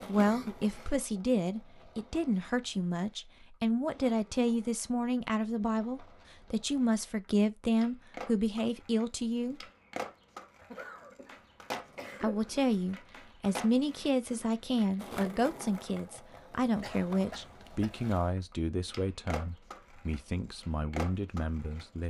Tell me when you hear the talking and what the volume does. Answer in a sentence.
You can hear the talking from 0.1 to 9.7 s, at a steady volume; and from 12.2 to 22.0 s, getting quieter.